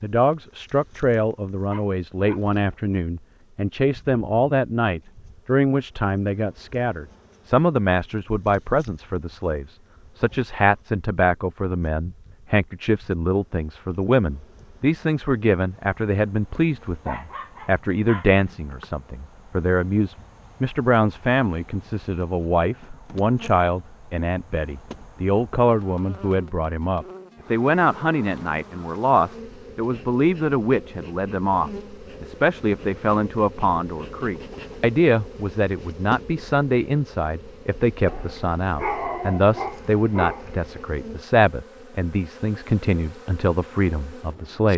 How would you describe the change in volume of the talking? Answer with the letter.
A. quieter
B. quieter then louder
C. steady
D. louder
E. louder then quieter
C.